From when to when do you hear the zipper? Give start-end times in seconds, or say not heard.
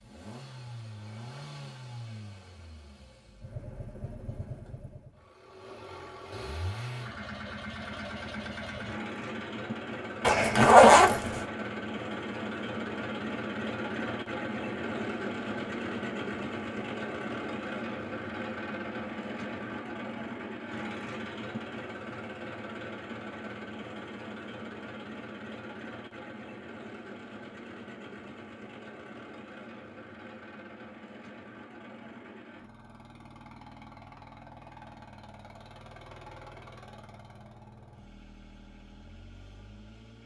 10.2-11.4.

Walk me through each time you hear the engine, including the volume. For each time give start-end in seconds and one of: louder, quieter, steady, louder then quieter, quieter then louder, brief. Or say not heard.
0.0-40.2 louder then quieter.